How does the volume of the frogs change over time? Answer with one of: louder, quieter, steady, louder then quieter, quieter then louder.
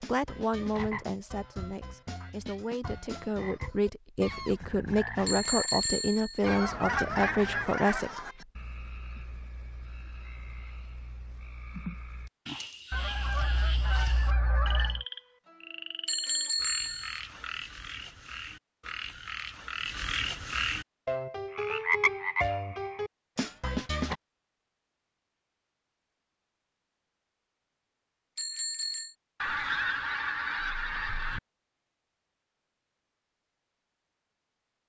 louder.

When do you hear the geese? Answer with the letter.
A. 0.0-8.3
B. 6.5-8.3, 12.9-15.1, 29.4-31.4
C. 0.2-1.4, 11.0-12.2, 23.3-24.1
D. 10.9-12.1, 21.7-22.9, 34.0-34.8
B.